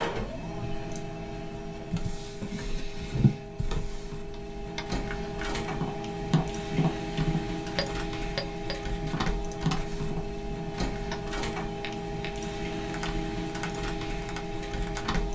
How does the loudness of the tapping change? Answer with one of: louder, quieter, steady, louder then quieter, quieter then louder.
quieter.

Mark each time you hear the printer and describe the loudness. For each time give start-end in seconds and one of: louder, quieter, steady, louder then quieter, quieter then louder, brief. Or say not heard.
0.0-15.3 steady.